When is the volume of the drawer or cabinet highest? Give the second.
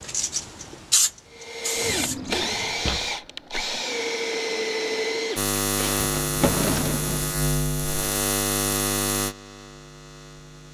7 s.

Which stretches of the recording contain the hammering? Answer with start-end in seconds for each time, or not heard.
not heard.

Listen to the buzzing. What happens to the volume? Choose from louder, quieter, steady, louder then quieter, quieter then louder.
quieter.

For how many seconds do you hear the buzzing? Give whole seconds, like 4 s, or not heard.
5 s.